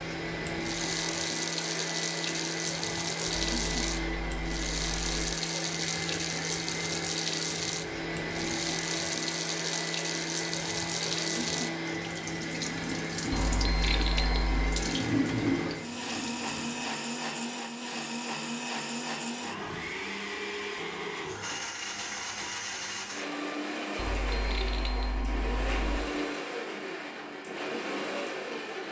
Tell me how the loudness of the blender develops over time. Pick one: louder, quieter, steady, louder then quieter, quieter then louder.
steady.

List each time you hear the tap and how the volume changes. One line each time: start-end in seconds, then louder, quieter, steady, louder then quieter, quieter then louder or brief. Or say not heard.
0.2-16.9 steady.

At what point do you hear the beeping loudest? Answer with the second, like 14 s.
14 s.